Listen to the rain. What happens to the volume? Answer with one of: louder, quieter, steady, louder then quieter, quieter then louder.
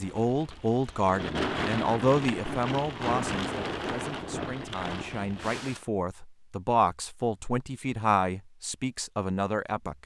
louder then quieter.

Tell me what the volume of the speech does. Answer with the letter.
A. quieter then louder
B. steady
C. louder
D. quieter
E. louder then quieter
A.